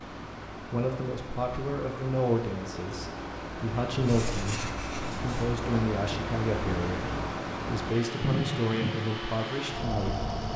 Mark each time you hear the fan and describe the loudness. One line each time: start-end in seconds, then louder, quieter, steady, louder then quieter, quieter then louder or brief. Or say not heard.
0.0-10.5 louder.